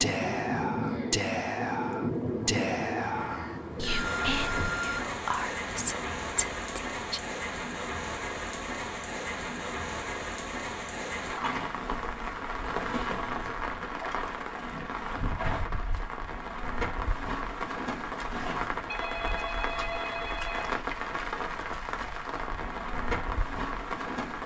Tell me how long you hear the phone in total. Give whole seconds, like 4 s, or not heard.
5 s.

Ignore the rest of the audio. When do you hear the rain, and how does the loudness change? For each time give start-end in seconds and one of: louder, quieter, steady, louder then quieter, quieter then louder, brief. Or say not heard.
0.0-24.4 steady.